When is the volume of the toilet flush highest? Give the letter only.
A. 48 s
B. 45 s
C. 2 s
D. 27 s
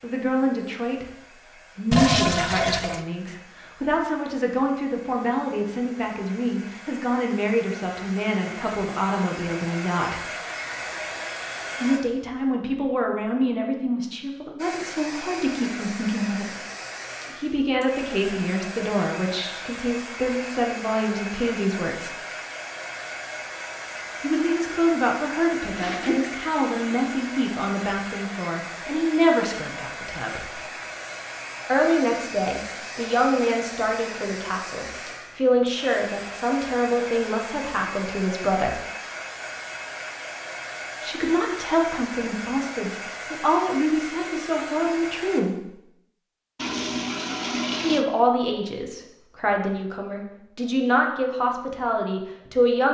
C.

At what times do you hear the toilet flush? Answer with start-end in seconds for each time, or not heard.
1.9-3.0, 25.6-27.1, 46.5-48.0.